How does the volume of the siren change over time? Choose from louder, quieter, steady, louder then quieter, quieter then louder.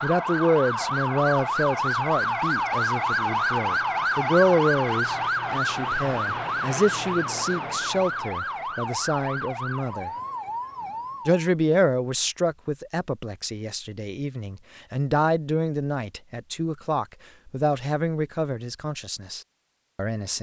quieter.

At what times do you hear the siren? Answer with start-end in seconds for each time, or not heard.
0.0-11.4.